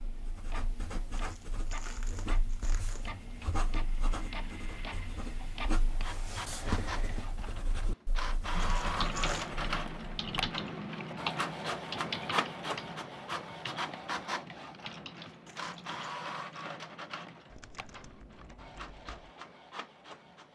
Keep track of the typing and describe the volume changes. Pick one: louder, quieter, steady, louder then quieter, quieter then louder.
quieter.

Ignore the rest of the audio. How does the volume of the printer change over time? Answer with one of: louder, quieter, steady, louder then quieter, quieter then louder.
louder then quieter.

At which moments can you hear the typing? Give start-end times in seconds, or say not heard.
8.5-19.3.